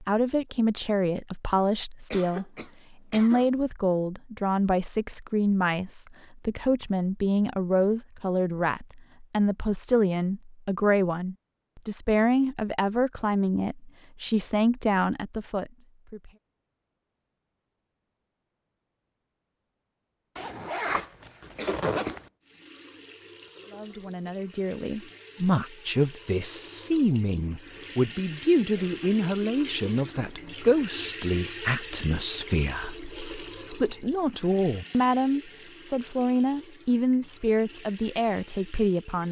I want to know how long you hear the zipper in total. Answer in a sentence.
You can hear the zipper for 2 seconds altogether.